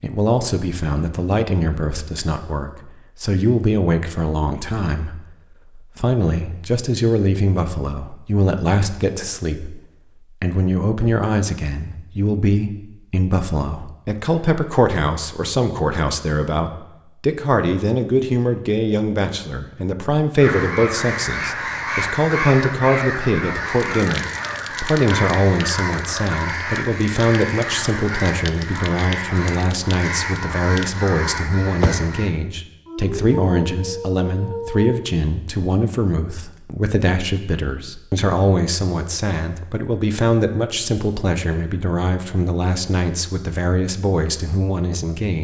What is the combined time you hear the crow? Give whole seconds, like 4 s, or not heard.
12 s.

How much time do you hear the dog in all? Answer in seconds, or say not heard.
2 s.